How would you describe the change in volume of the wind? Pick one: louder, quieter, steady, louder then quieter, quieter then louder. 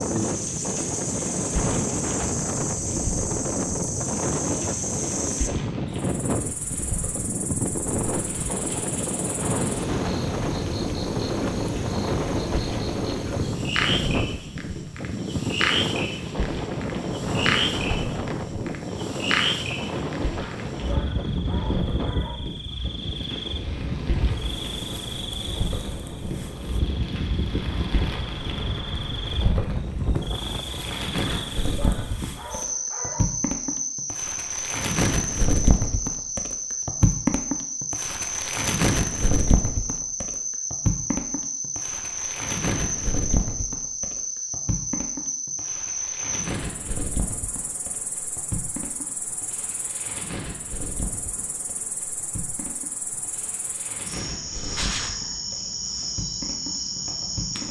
quieter.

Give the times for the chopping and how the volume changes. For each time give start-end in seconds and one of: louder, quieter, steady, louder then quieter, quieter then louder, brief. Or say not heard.
not heard.